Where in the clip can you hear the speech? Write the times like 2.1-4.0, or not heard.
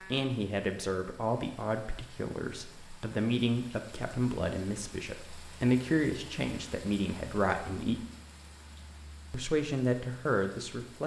0.1-8.0, 9.3-11.0.